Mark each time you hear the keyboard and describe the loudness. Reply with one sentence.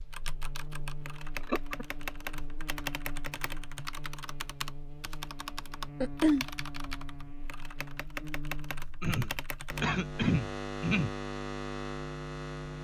You can hear the keyboard from 0.1 to 9.8 s, at a steady volume.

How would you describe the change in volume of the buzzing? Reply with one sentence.
The volume of the buzzing goes up.